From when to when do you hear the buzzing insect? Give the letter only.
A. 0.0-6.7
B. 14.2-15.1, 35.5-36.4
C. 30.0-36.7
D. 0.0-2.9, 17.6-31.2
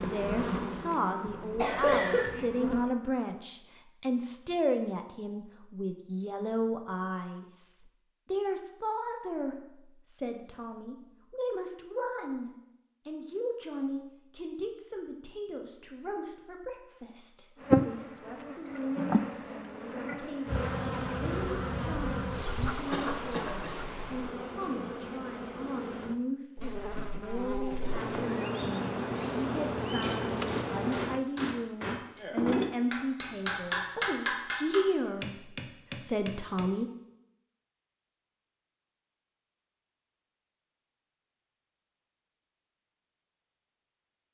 D.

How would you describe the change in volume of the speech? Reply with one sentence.
The volume of the speech goes down, then up.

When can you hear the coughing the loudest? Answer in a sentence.
The loudest moment of the coughing is at 2 seconds.